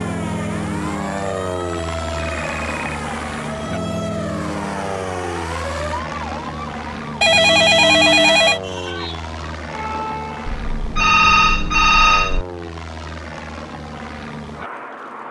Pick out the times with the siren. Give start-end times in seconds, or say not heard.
0.0-10.6.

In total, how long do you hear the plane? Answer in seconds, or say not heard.
15 s.